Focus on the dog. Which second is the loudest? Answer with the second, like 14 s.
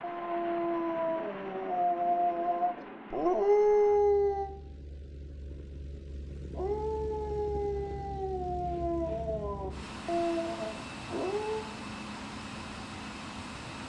4 s.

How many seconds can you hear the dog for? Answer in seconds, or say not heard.
10 s.